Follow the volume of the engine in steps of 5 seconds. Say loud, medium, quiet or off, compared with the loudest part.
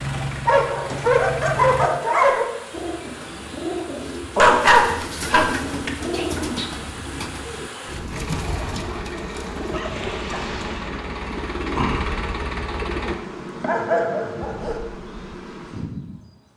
loud, medium, loud, off.